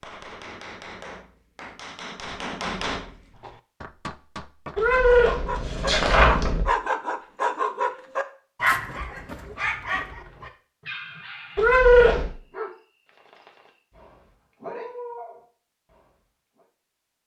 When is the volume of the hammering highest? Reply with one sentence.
The volume of the hammering peaks at 3 seconds.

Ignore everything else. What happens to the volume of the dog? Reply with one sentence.
The loudness of the dog goes down.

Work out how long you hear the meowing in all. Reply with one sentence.
The meowing can be heard for 3 seconds in total.